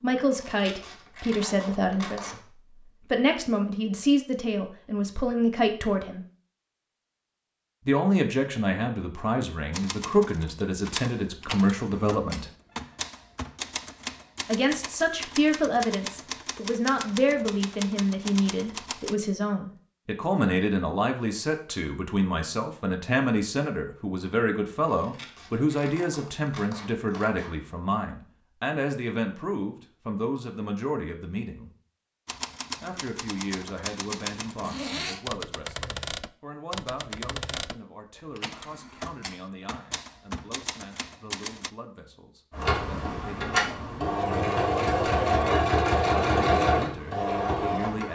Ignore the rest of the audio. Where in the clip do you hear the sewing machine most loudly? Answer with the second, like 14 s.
46 s.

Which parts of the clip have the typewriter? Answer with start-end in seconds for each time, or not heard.
9.7-19.1, 32.2-41.7.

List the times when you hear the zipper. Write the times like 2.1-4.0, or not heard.
34.5-35.2.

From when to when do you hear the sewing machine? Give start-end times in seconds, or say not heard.
42.5-48.1.